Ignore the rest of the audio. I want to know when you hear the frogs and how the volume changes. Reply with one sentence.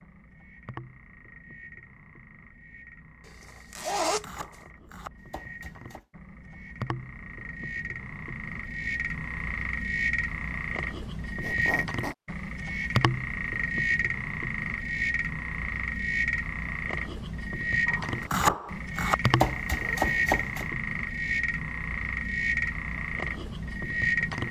You can hear the frogs from 0.0 to 24.4 s, getting louder.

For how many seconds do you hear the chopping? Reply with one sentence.
The chopping can be heard for 5 seconds in total.